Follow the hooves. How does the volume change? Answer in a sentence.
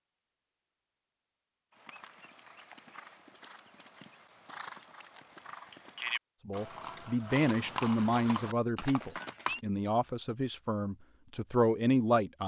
The loudness of the hooves goes up.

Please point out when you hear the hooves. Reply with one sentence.
You can hear the hooves from 1.8 to 9.6 s.